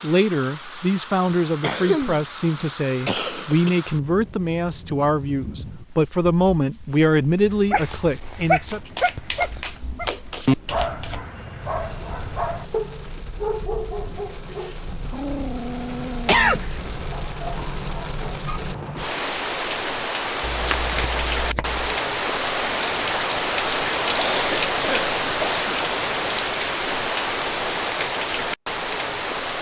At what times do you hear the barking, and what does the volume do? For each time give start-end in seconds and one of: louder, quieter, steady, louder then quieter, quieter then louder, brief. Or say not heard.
7.5-18.6 quieter.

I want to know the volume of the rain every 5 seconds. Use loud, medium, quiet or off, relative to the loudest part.
quiet, quiet, quiet, medium, loud, loud.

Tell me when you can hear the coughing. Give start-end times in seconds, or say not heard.
1.2-3.8, 16.2-16.9, 24.1-25.9.